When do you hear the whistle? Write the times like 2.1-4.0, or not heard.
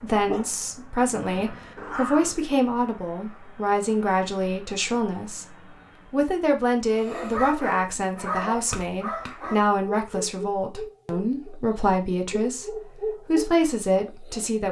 not heard.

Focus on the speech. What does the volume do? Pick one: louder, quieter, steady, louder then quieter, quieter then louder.
steady.